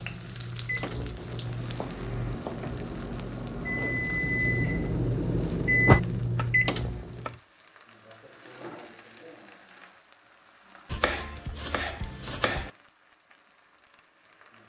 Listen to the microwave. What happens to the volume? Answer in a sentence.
The loudness of the microwave goes up.